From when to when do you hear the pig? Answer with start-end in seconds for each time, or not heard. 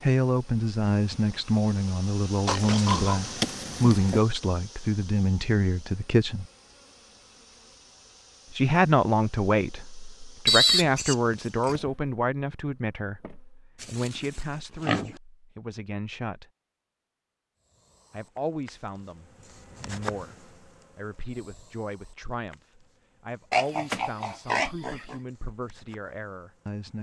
2.5-4.2, 10.4-11.8, 13.8-15.2, 23.5-25.1.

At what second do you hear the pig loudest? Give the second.
11 s.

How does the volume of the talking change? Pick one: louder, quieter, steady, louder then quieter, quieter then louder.
quieter.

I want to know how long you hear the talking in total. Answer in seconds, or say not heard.
23 s.